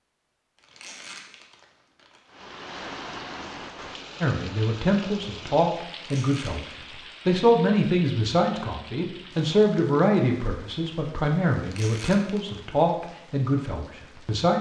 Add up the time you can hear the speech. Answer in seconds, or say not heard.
10 s.